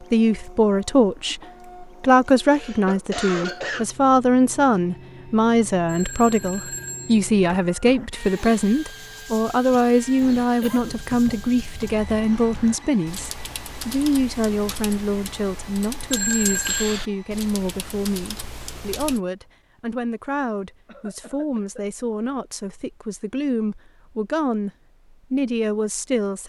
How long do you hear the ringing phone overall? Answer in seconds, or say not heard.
2 s.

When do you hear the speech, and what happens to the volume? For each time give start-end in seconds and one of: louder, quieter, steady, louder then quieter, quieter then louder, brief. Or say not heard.
0.0-24.7 quieter
25.3-26.4 brief.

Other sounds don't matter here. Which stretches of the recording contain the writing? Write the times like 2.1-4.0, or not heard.
not heard.